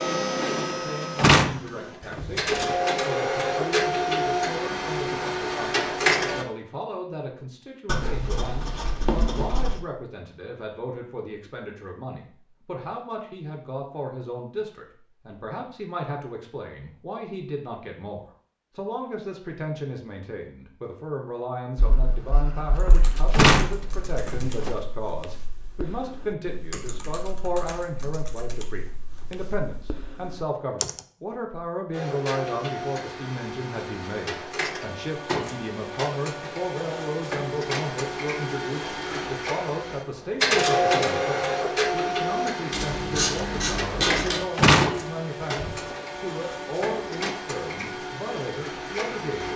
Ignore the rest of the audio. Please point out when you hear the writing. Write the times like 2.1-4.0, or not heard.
7.8-9.8, 21.8-24.1, 42.7-44.4.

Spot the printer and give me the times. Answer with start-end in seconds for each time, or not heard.
0.0-6.5, 31.9-49.5.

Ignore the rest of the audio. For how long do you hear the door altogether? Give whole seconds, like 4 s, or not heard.
5 s.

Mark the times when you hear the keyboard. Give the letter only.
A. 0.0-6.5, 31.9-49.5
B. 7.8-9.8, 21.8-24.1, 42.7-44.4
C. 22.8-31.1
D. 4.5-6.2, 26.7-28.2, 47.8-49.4
C.